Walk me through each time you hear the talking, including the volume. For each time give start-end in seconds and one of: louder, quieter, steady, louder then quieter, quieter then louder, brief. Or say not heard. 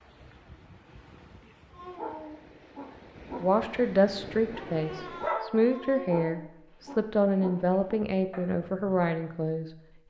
3.4-9.7 steady.